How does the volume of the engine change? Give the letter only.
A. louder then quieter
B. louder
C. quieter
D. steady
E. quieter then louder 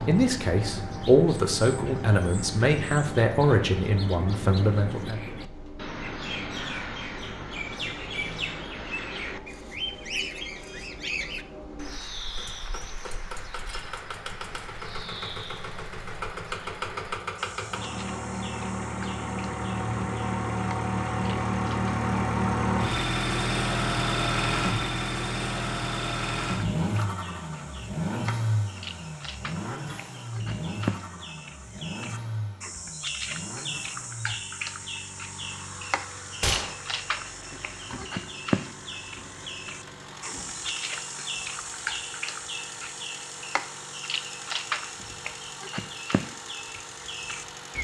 A.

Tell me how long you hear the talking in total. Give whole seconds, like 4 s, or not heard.
5 s.